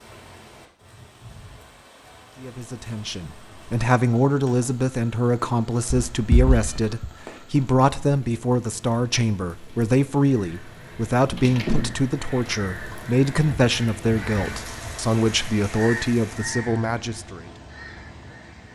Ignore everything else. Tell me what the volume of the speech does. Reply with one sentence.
The loudness of the speech stays about the same.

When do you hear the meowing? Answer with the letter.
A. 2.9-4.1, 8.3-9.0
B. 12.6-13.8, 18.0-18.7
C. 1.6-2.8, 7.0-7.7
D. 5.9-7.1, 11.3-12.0
D.